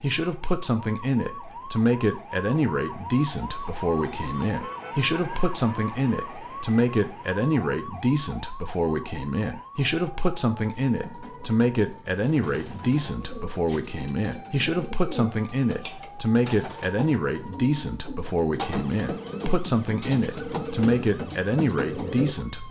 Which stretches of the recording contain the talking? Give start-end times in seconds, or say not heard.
0.0-22.6.